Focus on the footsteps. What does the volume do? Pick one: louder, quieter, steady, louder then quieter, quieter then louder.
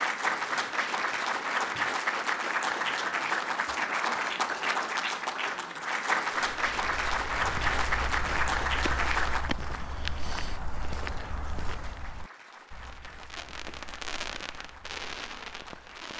quieter.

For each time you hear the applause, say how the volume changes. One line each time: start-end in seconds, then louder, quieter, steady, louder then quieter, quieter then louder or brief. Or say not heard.
0.0-16.1 quieter.